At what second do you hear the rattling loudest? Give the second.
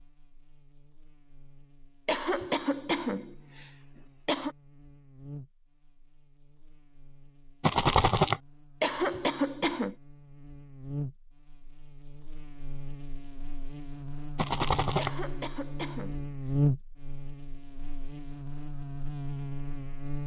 8 s.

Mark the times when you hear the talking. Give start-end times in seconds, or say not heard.
not heard.